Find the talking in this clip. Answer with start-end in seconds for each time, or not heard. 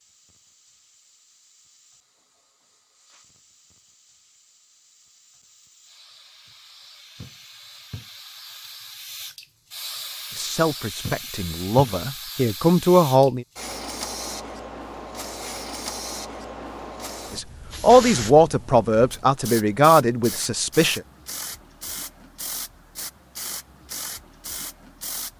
10.3-13.4, 17.3-21.0.